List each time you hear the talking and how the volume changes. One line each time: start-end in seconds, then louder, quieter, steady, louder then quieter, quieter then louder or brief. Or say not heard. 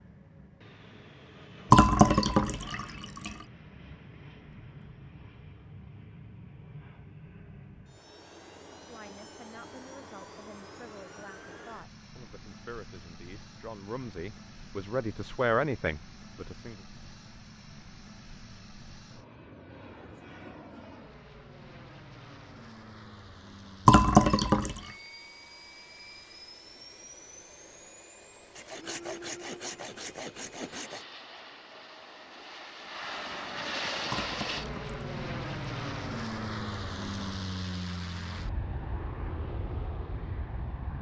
8.7-16.8 louder.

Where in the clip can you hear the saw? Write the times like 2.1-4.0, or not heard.
28.6-31.1.